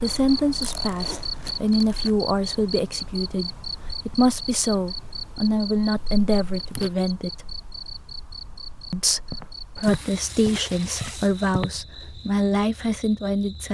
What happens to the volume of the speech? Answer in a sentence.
The loudness of the speech stays about the same.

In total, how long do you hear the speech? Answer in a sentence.
You can hear the speech for 12 seconds altogether.